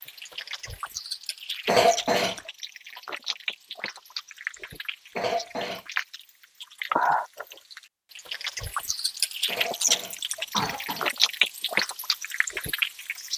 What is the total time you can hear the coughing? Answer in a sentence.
You can hear the coughing for 3 seconds altogether.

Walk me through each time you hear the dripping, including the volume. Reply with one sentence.
The dripping can be heard from 0.0 to 13.3 s, getting louder.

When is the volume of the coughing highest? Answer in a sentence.
The loudest moment of the coughing is at 2 seconds.